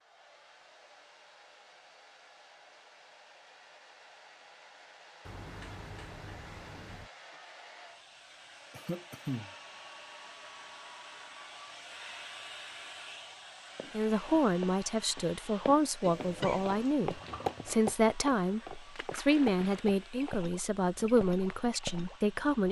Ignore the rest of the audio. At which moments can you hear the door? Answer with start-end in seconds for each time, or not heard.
5.2-7.1.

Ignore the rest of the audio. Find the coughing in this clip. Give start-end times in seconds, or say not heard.
8.7-9.5, 16.0-16.9.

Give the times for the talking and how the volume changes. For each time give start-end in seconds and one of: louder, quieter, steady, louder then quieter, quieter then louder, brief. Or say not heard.
13.9-22.6 steady.